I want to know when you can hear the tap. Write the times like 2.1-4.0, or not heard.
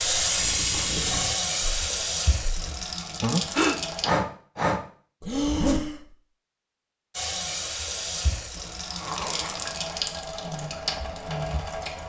0.0-4.1, 7.1-12.0.